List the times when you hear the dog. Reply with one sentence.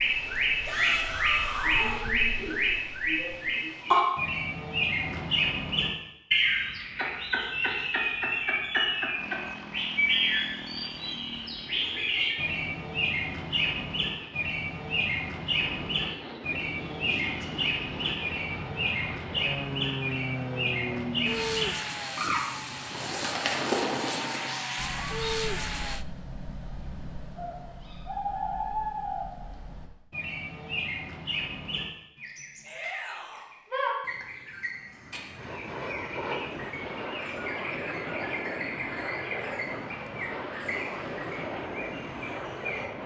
You can't hear the dog here.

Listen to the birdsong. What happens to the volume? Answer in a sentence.
The loudness of the birdsong goes down.